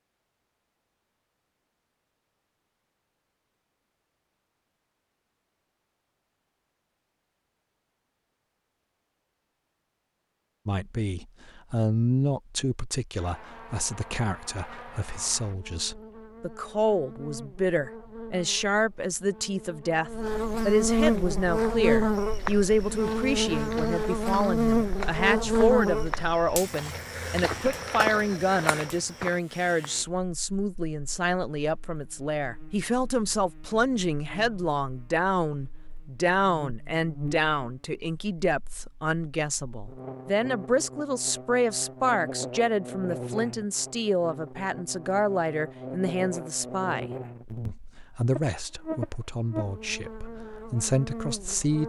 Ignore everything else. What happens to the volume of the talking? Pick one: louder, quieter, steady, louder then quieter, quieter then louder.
steady.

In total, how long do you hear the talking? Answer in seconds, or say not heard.
41 s.